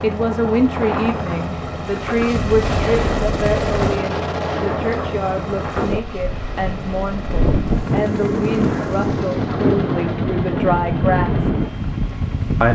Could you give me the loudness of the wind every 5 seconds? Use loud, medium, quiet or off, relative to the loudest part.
medium, loud, loud.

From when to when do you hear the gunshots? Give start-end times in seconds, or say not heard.
2.6-5.0.